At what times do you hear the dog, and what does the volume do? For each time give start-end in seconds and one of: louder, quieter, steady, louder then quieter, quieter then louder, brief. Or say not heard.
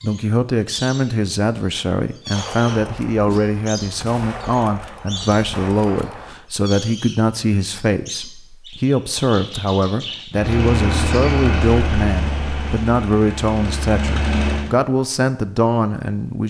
not heard.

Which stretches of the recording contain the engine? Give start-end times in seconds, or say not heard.
10.3-14.7.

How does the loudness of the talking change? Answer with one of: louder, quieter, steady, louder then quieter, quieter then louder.
steady.